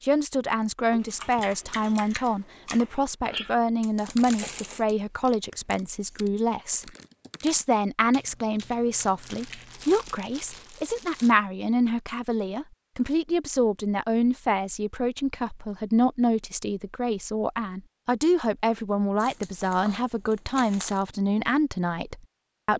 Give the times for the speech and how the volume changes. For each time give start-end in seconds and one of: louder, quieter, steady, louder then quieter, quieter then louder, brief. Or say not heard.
0.0-22.7 steady.